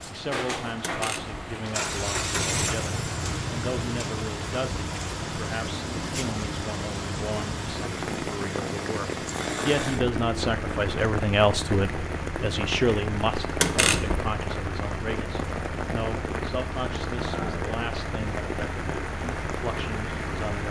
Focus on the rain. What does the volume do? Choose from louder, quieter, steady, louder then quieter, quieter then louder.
steady.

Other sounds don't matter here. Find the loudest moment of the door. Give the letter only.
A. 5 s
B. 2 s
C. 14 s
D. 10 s
C.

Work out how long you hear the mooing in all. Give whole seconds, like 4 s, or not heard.
not heard.